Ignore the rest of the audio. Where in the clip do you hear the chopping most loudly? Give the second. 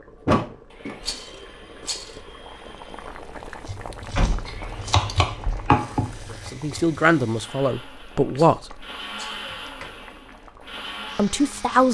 6 s.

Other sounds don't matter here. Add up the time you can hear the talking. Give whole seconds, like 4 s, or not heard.
3 s.